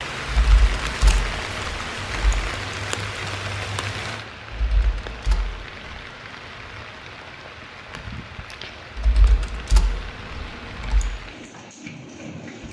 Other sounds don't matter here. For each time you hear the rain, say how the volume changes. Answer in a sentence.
You can hear the rain from 0.0 to 12.6 s, getting quieter.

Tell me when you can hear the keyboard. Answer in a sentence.
You can hear the keyboard from 0.2 to 2.5 s, from 4.5 to 6.0 s and from 8.9 to 11.1 s.